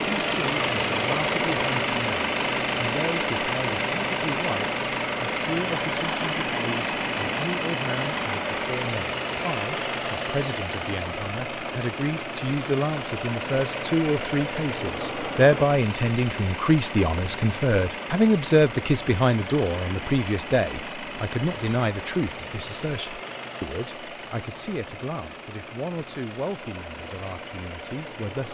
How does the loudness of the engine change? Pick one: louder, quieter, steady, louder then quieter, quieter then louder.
quieter.